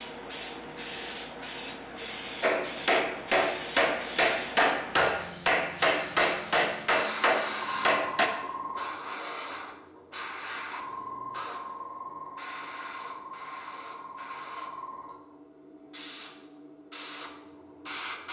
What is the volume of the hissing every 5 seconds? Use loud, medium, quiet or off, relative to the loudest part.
loud, loud, loud, medium.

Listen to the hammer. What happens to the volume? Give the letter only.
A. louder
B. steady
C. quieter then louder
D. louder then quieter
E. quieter
B.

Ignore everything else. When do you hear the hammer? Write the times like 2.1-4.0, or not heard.
2.4-8.3.